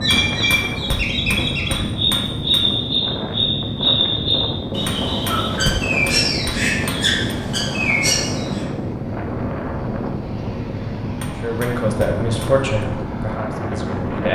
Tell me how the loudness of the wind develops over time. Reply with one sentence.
The volume of the wind stays about the same.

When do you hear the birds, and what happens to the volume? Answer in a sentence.
You can hear the birds from 0.0 to 8.7 s, at a steady volume.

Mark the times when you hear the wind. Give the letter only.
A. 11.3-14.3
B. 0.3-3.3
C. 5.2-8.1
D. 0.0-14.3
D.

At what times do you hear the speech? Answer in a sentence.
The speech can be heard from 11.3 to 14.3 s.